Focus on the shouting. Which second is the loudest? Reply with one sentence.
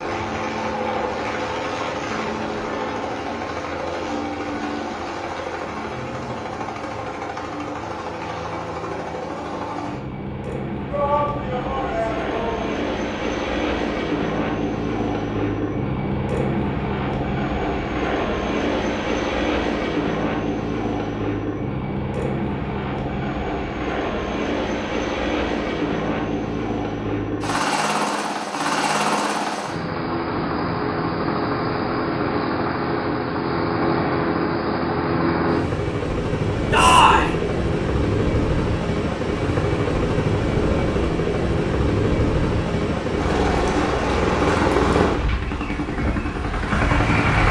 The volume of the shouting peaks at 37 seconds.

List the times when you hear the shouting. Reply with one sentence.
You can hear the shouting from 10.9 to 12.7 s and from 36.7 to 37.4 s.